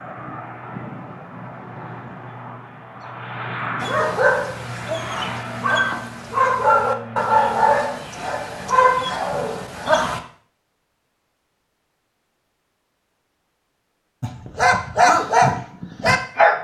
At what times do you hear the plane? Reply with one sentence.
You can hear the plane from 0.0 to 7.7 s.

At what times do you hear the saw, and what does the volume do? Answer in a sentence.
You can't hear the saw here.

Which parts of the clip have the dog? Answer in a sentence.
The dog can be heard from 3.8 to 10.2 s and from 14.2 to 16.5 s.